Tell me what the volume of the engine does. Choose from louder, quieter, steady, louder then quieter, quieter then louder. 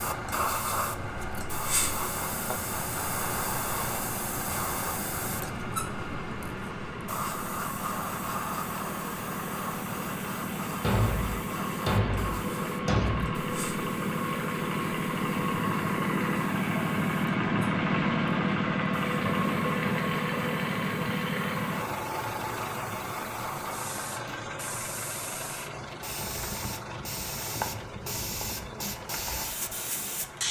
louder then quieter.